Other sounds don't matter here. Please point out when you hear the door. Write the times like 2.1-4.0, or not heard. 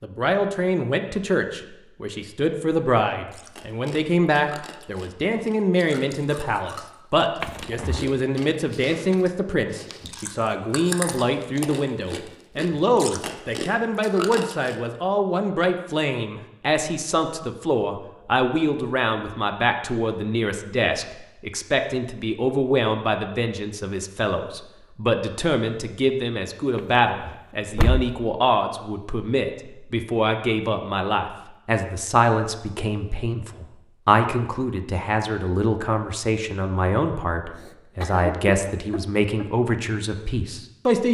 7.4-8.1, 26.8-28.1.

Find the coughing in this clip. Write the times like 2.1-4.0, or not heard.
37.5-39.5.